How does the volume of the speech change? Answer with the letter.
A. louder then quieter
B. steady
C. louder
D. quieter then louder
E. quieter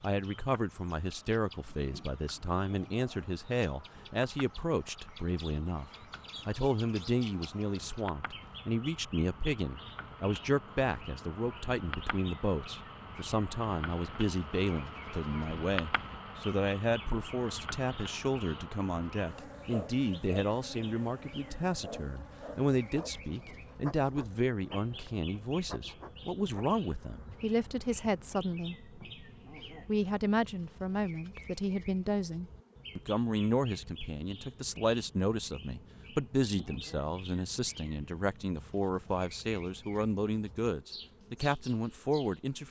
B.